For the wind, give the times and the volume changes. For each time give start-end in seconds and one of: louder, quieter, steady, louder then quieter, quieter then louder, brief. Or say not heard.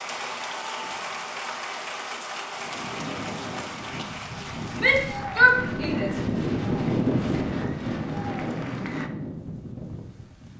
2.5-10.5 louder then quieter.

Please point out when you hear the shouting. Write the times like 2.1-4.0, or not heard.
4.8-6.2.